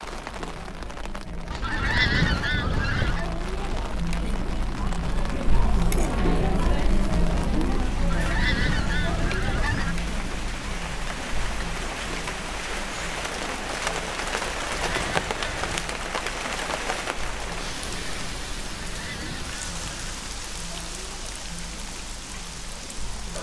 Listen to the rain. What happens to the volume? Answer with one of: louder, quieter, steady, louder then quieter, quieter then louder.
louder then quieter.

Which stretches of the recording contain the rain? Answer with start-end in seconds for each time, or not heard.
0.0-23.3.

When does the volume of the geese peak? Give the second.
2 s.